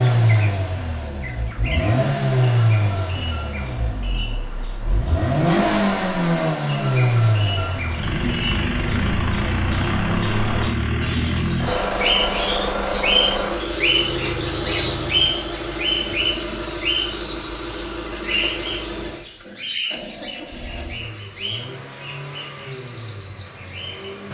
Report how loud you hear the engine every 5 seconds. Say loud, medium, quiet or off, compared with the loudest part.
loud, loud, loud, medium, quiet.